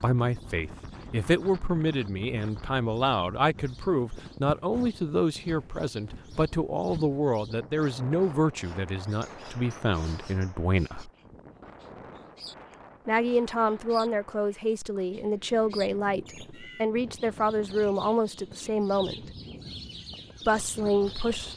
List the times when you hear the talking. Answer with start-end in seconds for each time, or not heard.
0.0-11.1, 13.1-19.3, 20.4-21.5.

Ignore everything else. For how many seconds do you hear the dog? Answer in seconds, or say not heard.
not heard.